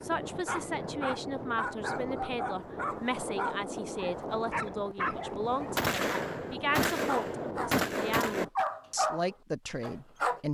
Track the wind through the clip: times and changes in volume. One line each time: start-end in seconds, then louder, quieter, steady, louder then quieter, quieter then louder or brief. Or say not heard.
0.0-8.5 steady.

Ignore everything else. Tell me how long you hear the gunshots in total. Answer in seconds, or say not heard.
3 s.